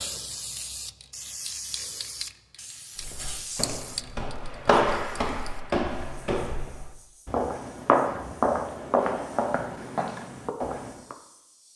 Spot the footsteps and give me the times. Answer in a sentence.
You can hear the footsteps from 3.0 to 11.2 s.